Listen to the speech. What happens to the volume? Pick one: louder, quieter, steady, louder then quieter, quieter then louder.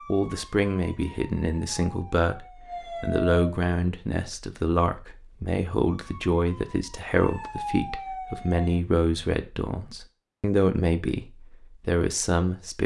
steady.